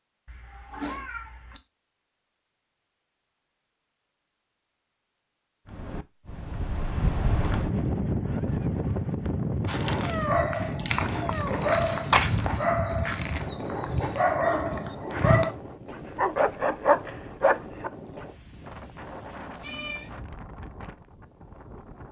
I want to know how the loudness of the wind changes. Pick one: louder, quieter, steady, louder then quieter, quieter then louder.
quieter.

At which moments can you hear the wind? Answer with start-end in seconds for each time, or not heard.
5.7-22.0.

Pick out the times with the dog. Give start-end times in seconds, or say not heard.
9.7-18.2.